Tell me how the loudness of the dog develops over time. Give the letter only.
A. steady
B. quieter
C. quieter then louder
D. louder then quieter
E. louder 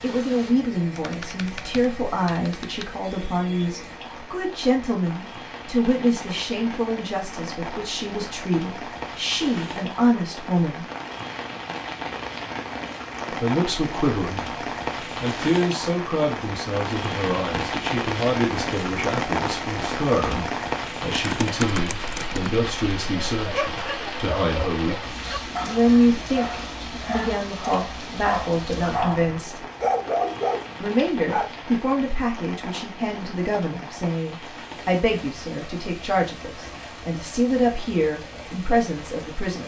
E.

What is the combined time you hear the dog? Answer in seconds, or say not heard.
8 s.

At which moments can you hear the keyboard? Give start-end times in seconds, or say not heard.
0.9-2.9, 21.1-22.6.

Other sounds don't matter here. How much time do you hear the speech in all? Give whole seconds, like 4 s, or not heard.
35 s.